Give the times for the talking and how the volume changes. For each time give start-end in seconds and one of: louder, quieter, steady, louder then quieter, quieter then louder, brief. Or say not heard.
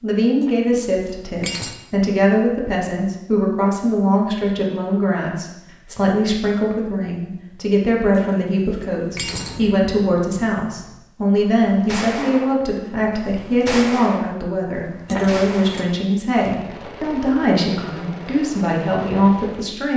0.0-19.9 steady.